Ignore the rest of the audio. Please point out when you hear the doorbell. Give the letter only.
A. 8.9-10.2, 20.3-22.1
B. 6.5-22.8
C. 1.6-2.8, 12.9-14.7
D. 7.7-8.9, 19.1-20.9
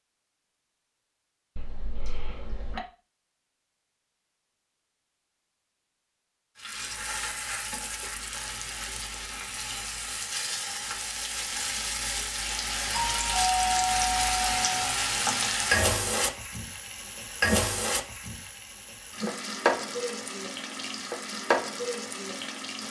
C.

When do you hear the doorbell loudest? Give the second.
14 s.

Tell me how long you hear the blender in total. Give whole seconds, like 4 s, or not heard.
not heard.